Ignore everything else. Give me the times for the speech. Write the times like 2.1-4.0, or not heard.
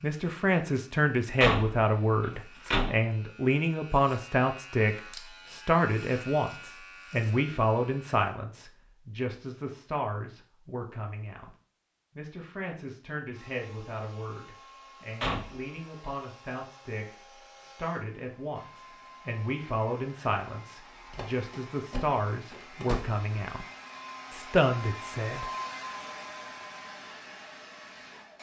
0.0-11.5, 12.2-23.6, 24.3-25.4.